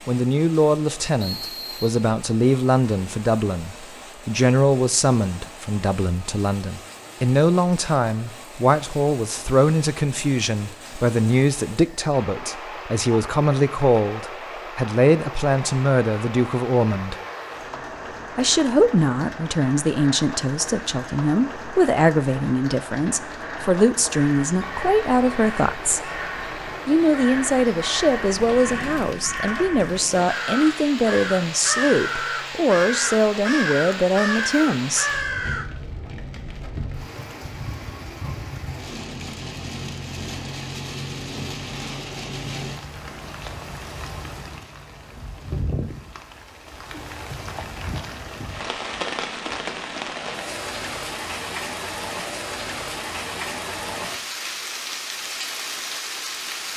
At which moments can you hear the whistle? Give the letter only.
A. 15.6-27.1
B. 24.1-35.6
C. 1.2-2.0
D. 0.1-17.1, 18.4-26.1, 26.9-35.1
C.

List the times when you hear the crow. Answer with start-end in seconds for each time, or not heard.
24.1-35.6.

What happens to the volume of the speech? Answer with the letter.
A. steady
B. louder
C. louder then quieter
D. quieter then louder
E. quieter
A.